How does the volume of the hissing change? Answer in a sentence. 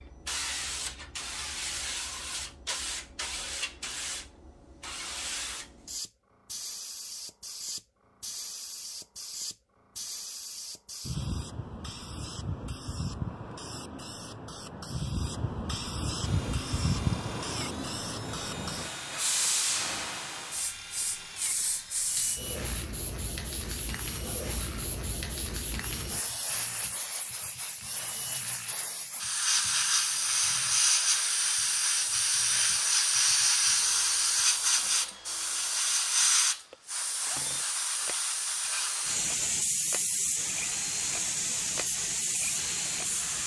The volume of the hissing goes up.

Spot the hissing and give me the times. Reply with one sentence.
The hissing can be heard from 0.0 to 43.4 s.